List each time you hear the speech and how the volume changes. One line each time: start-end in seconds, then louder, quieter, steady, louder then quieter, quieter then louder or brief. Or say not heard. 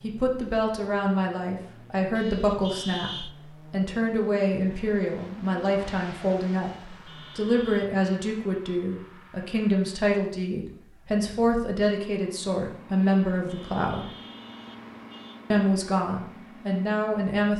0.0-14.1 steady
15.5-17.5 brief.